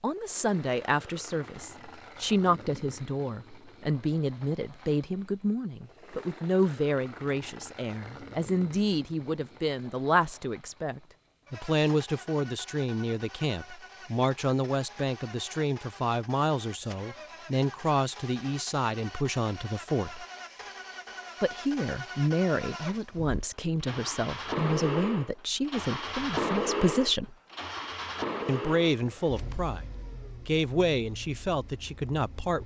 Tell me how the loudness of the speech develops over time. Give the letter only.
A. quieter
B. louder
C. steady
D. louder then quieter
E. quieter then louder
C.